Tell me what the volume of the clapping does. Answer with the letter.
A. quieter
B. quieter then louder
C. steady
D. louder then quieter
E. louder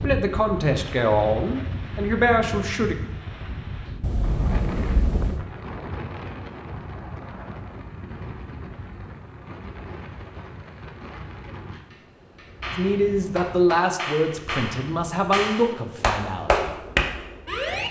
E.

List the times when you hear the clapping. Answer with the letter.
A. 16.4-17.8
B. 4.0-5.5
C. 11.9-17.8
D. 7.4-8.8
C.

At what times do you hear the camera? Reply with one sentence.
The camera can be heard from 4.0 to 5.5 s.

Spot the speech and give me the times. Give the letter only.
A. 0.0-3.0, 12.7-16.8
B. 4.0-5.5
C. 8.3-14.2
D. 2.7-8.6
A.